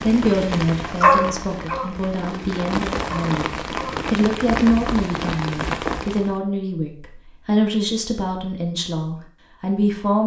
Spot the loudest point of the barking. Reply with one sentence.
The volume of the barking peaks at 1 second.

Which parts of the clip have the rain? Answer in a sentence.
The rain can be heard from 0.0 to 6.3 s.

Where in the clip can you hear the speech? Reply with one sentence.
The speech can be heard from 0.0 to 10.2 s.